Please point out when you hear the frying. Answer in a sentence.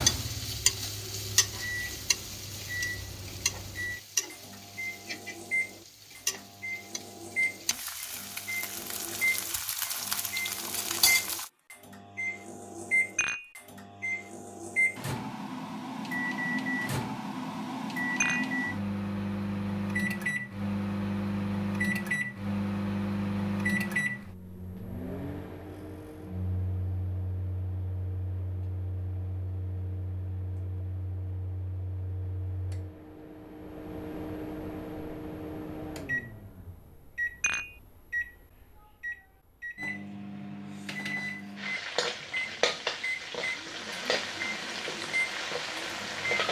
The frying can be heard from 0.0 to 11.5 s and from 41.5 to 46.4 s.